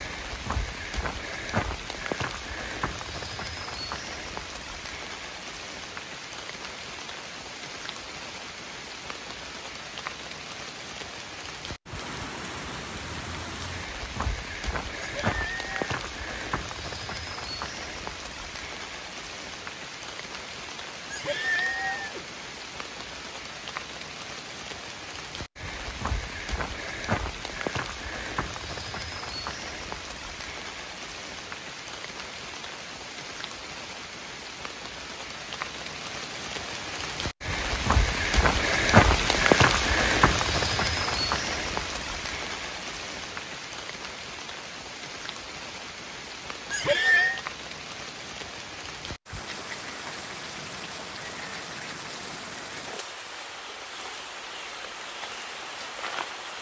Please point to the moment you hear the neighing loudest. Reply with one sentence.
The loudest moment of the neighing is at 47 seconds.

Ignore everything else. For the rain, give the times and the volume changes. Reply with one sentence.
The rain can be heard from 0.0 to 56.5 s, getting louder then quieter.